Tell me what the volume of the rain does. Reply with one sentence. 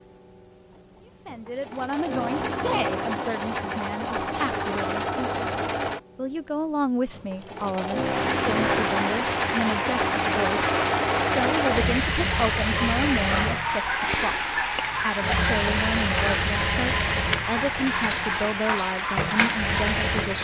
The loudness of the rain stays about the same.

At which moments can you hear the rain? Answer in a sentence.
The rain can be heard from 8.0 to 20.3 s.